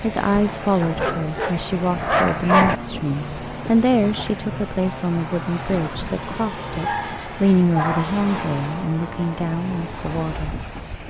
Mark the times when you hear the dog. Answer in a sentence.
The dog can be heard from 0.8 to 2.8 s and from 6.7 to 8.2 s.